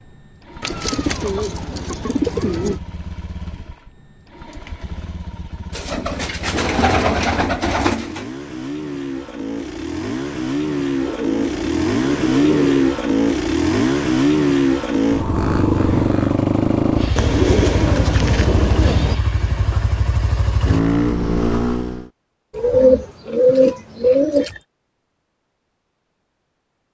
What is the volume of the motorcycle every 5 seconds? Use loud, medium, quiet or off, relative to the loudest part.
quiet, quiet, loud, loud, loud, off.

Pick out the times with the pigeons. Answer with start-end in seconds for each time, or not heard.
0.6-2.8, 5.7-8.2, 11.0-12.8, 17.1-19.1, 22.6-24.6.